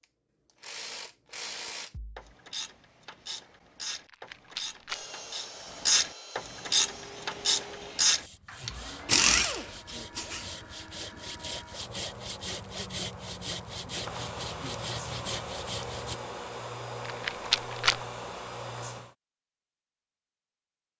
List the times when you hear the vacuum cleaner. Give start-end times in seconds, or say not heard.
6.7-19.1.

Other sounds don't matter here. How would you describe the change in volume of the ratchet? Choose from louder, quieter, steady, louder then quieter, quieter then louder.
louder.